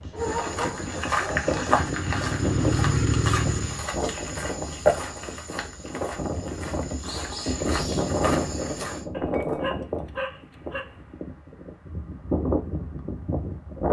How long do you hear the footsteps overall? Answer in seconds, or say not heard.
9 s.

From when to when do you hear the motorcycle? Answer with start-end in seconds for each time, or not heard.
0.0-3.9.